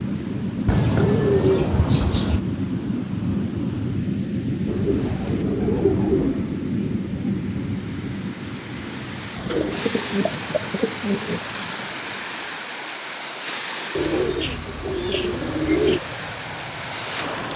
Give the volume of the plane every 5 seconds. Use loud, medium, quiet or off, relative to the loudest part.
loud, loud, quiet, quiet.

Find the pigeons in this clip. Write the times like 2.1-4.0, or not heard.
0.7-2.4, 4.7-6.6, 9.5-11.4, 13.9-16.0.